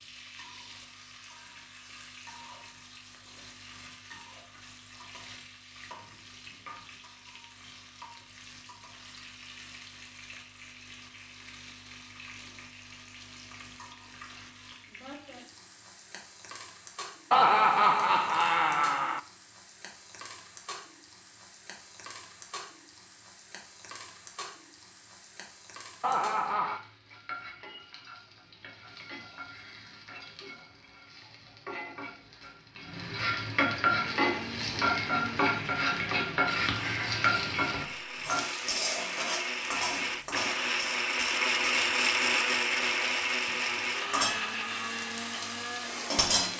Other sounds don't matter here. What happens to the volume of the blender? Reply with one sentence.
The volume of the blender goes up, then down.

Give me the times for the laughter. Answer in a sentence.
You can hear the laughter from 17.3 to 19.2 s and from 26.0 to 26.8 s.